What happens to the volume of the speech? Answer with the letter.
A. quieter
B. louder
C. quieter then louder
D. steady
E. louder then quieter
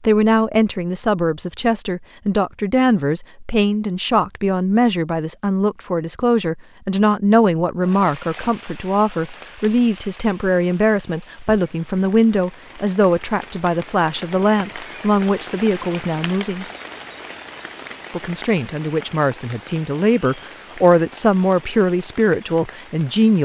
D.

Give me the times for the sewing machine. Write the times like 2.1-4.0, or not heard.
not heard.